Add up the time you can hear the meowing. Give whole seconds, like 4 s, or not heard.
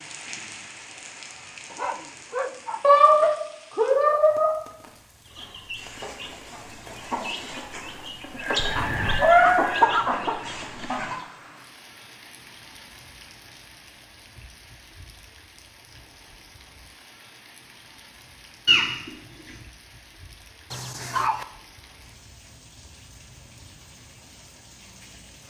3 s.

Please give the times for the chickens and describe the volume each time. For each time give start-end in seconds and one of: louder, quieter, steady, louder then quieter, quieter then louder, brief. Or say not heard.
5.2-11.2 louder.